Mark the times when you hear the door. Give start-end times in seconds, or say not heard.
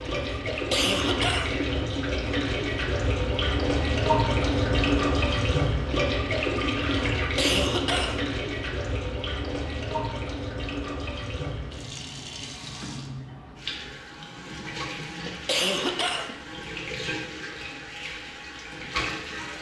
not heard.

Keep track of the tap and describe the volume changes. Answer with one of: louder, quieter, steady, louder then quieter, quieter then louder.
quieter.